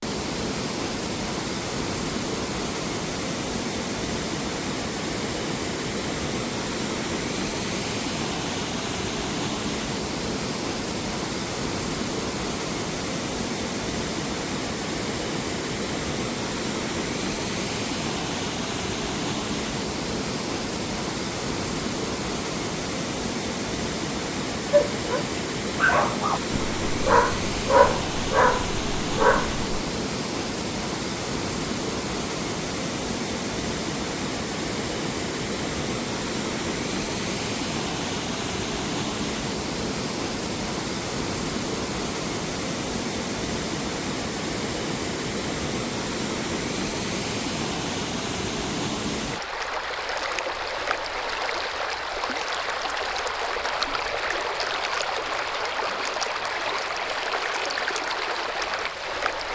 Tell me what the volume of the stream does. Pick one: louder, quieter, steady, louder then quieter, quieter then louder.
steady.